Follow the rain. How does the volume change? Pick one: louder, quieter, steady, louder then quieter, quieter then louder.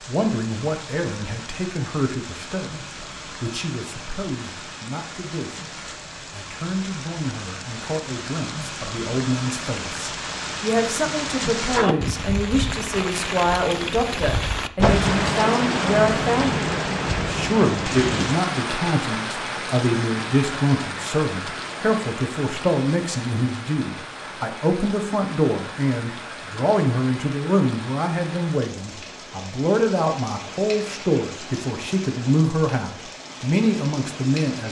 louder then quieter.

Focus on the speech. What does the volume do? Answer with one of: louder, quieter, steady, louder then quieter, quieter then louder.
louder.